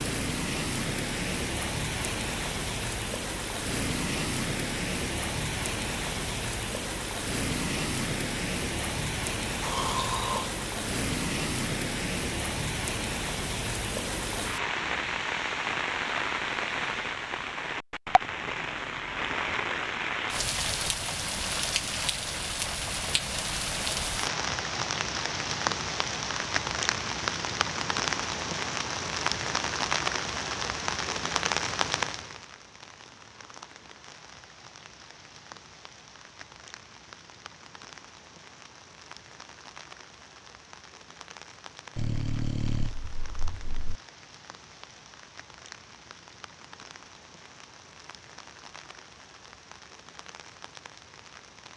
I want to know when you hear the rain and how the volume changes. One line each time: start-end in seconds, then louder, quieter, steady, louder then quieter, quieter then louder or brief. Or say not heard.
0.0-51.7 quieter.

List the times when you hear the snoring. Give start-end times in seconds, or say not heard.
9.6-10.9, 42.0-44.0.